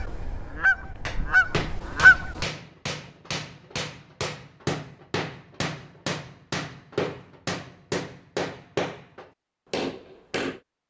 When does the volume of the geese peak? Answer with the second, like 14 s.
2 s.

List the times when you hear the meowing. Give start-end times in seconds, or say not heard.
not heard.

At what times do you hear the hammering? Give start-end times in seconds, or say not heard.
1.1-10.6.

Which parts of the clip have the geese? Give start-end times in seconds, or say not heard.
0.0-2.5.